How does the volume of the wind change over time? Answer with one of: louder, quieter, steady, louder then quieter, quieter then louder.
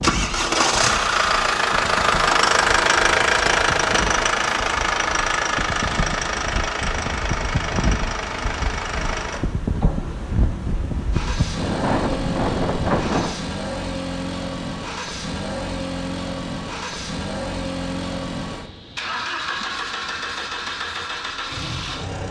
louder.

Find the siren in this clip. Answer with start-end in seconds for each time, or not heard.
not heard.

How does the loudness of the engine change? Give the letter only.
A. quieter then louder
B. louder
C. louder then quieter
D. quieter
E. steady
D.